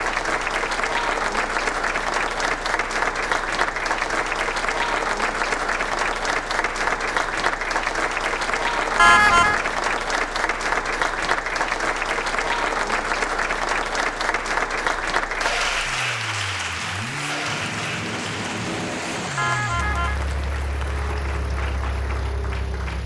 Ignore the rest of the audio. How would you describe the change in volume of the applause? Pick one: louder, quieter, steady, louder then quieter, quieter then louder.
quieter.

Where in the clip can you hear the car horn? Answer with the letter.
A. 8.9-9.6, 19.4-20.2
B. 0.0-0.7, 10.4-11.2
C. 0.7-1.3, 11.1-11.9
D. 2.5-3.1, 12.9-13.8
A.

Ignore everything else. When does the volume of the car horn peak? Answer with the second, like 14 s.
9 s.